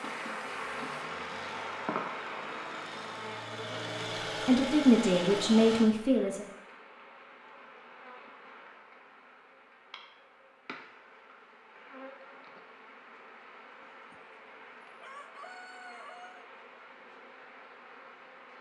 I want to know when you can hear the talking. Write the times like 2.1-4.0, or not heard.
4.5-6.5.